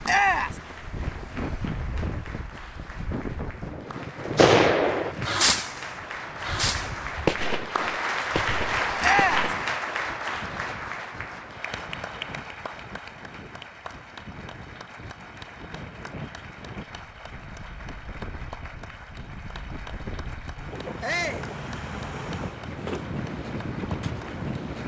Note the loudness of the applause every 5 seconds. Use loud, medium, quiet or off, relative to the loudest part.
quiet, loud, medium, quiet, quiet.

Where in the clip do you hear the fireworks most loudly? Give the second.
5 s.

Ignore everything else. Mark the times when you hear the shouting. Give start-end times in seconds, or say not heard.
0.1-0.5, 9.0-9.4, 21.0-21.4.